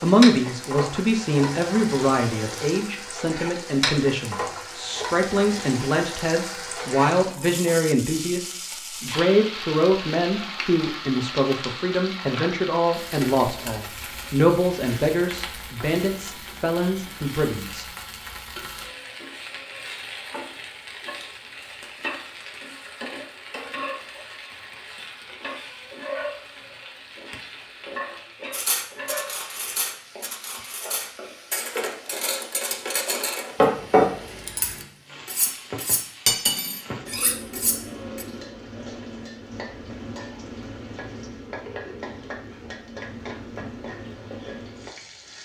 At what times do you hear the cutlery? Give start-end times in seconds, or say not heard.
28.5-38.2.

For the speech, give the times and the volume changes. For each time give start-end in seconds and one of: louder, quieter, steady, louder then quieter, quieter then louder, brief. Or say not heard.
0.0-17.9 steady.